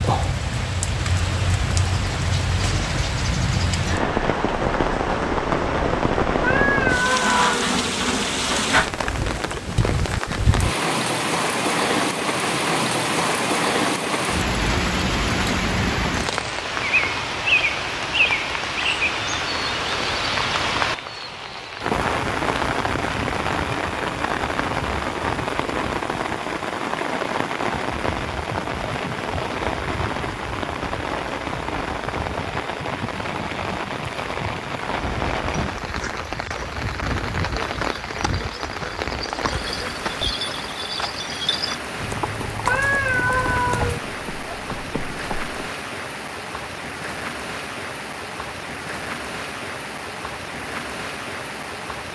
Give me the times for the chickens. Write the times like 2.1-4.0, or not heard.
not heard.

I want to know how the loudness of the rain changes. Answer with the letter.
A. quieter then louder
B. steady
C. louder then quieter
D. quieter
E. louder
D.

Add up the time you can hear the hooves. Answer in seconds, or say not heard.
11 s.